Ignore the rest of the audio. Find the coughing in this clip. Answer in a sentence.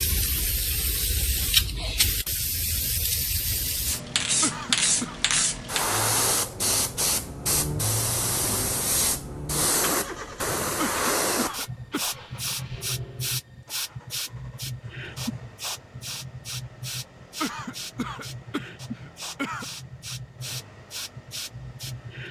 You can hear the coughing from 4.4 to 5.2 s, from 10.8 to 12.4 s and from 17.4 to 19.6 s.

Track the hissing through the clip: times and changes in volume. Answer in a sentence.
You can hear the hissing from 0.0 to 22.2 s, getting quieter.